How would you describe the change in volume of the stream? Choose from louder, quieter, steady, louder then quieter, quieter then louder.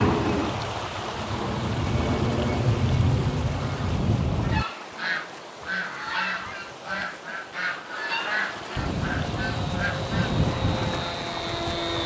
quieter then louder.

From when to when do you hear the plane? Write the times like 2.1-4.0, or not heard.
0.0-4.7, 8.8-12.0.